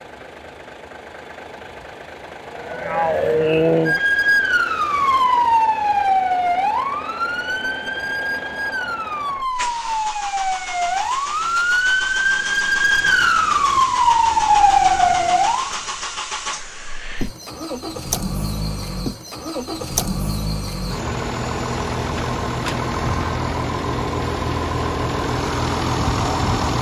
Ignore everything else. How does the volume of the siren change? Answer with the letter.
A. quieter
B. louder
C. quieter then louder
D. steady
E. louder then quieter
C.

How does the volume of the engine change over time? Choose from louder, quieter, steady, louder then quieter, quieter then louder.
louder.